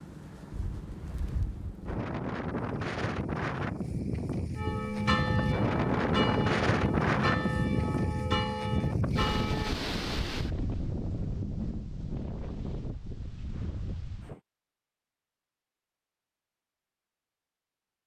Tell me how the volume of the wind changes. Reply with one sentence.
The volume of the wind goes up, then down.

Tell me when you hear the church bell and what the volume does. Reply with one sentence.
You can hear the church bell from 4.5 to 9.8 s, at a steady volume.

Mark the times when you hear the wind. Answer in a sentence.
The wind can be heard from 0.0 to 14.4 s.